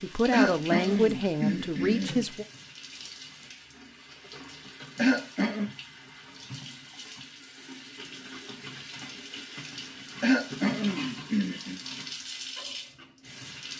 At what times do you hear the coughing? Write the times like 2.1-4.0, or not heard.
0.3-2.2, 5.0-5.7, 10.2-11.8.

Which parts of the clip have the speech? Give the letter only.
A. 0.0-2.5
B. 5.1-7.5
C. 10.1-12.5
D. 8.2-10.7
A.